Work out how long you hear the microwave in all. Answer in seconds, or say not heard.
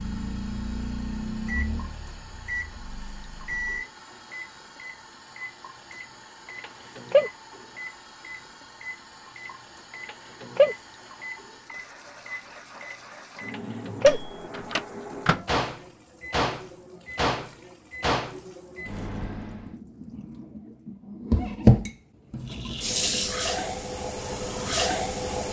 20 s.